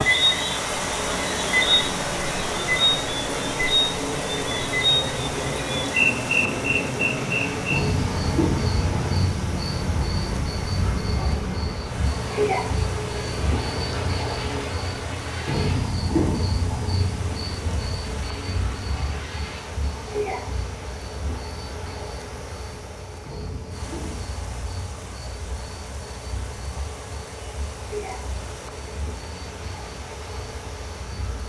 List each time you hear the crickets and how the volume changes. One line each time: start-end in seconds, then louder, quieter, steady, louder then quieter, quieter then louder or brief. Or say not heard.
0.0-31.4 quieter.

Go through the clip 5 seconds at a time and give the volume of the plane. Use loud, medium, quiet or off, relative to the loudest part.
loud, loud, loud, medium, quiet, quiet, quiet.